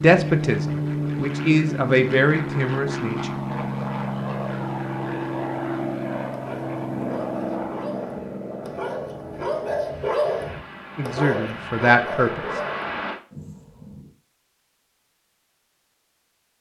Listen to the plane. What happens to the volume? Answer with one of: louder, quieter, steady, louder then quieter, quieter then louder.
quieter.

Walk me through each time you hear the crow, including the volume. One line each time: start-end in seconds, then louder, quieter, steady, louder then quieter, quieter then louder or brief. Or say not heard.
not heard.